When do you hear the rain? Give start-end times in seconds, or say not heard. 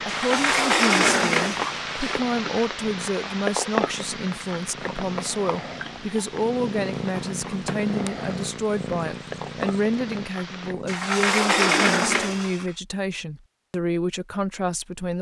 0.0-10.8.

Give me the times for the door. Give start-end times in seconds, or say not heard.
0.1-2.2, 7.0-7.9, 10.8-12.7.